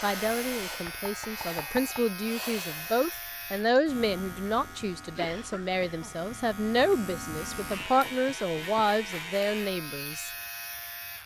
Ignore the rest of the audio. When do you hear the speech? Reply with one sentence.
The speech can be heard from 0.0 to 10.3 s.